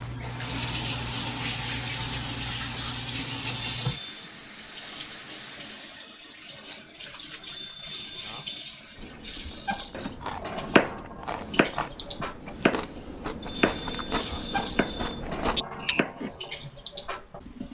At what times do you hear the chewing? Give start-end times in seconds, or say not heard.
8.9-16.1.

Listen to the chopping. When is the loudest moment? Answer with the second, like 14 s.
11 s.